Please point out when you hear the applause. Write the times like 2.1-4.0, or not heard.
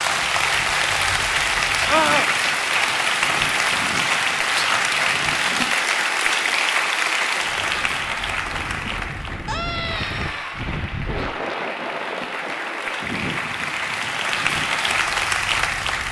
0.0-16.0.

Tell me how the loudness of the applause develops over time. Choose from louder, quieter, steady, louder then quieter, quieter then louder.
quieter then louder.